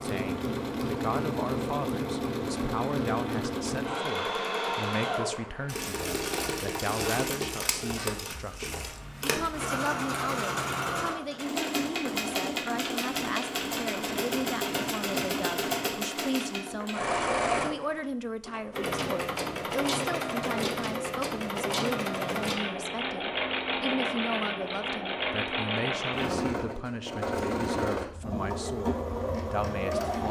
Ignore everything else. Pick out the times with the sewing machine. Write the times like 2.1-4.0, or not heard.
0.0-30.2.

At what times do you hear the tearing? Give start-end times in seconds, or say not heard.
not heard.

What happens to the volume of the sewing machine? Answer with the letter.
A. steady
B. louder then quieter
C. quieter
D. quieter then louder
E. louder
A.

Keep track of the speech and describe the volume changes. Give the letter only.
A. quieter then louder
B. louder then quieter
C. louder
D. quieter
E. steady
E.